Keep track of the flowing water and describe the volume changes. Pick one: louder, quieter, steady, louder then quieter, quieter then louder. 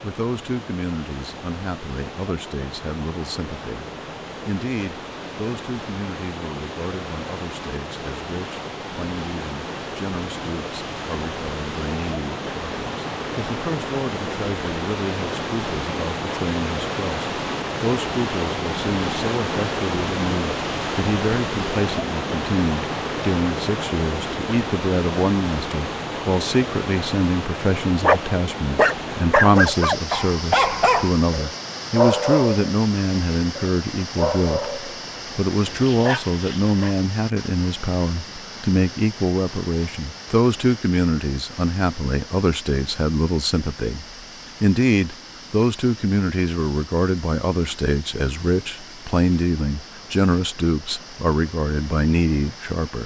louder then quieter.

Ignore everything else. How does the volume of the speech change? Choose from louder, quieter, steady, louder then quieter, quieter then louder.
louder.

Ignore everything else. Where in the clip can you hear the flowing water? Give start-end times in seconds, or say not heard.
0.0-53.0.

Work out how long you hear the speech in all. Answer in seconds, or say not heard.
53 s.